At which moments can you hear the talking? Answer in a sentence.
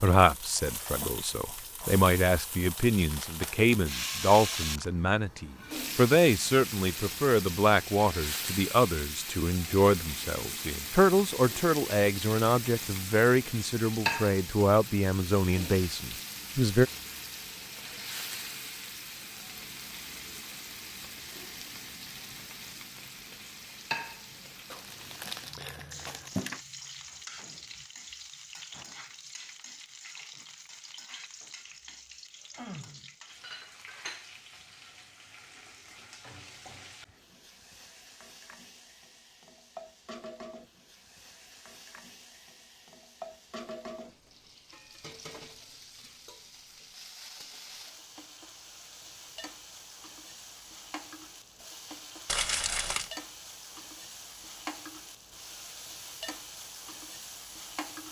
The talking can be heard from 0.0 to 16.9 s.